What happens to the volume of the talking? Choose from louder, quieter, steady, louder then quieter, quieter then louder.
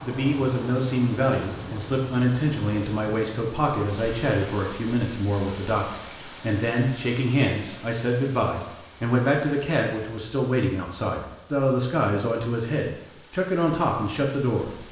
steady.